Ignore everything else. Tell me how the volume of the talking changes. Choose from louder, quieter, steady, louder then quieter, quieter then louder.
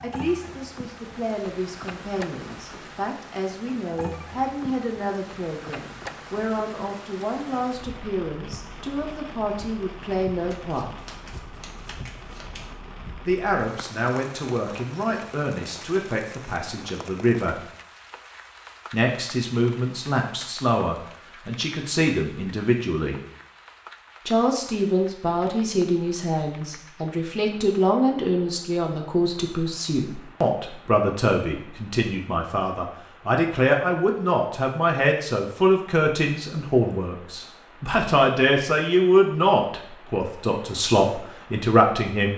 louder.